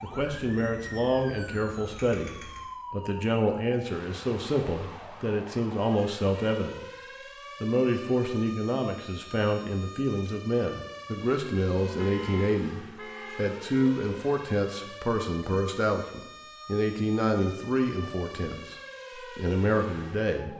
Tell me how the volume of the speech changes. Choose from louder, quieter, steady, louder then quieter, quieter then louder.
steady.